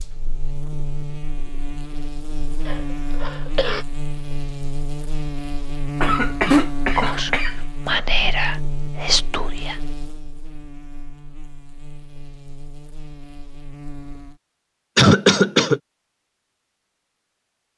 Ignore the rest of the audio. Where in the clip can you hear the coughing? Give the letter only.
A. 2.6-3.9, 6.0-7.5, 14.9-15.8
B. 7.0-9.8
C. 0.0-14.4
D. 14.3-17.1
A.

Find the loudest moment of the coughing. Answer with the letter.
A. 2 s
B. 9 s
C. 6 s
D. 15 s
D.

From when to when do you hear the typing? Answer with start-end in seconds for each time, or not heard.
not heard.